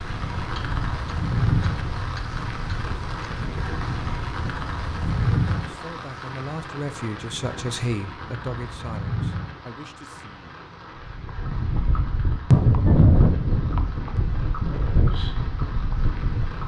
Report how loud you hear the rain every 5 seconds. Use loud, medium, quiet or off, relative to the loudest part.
loud, loud, medium, medium.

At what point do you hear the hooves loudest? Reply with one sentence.
The volume of the hooves peaks at 13 seconds.